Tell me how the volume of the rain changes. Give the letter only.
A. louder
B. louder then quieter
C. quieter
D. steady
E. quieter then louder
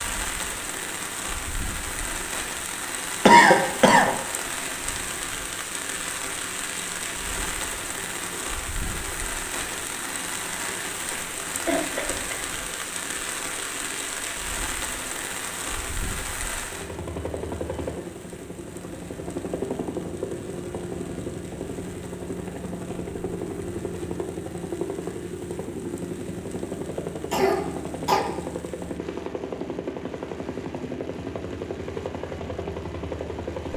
C.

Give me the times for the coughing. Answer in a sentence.
The coughing can be heard from 3.2 to 4.1 s, from 11.6 to 12.3 s and from 27.3 to 28.2 s.